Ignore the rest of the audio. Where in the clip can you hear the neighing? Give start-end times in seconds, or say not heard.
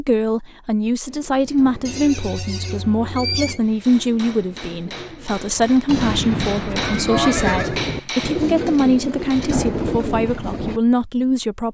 1.9-3.6, 5.8-7.8.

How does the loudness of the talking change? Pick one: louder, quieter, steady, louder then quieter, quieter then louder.
steady.